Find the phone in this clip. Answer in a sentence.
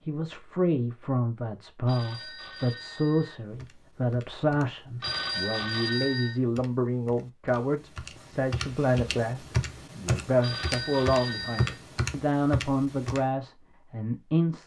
The phone can be heard from 1.9 to 3.4 s, from 5.0 to 6.4 s and from 10.4 to 11.8 s.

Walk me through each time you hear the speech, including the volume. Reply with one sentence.
You can hear the speech from 0.1 to 14.6 s, at a steady volume.